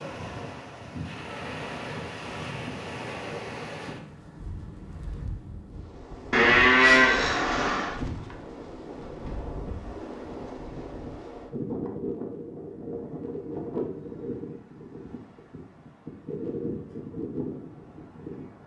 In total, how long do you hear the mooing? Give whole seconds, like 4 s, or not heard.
2 s.